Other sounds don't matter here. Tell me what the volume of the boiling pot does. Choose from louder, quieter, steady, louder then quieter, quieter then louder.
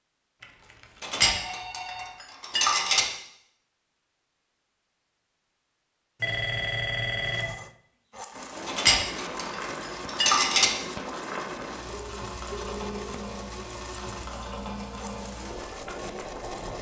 steady.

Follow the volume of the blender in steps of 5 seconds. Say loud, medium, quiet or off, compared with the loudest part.
off, loud, loud, loud.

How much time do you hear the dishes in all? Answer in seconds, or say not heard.
4 s.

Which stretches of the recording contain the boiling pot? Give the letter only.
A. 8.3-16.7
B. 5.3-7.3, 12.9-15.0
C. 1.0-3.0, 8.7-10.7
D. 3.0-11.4
A.